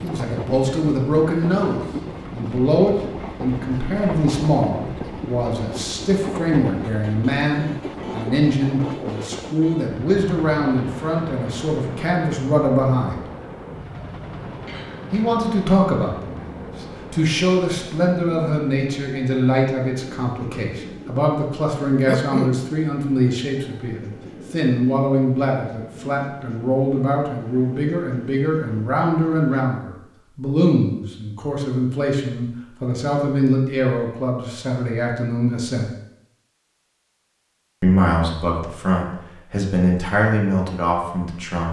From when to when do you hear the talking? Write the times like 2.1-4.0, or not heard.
0.0-13.2, 15.1-35.9, 37.8-41.6.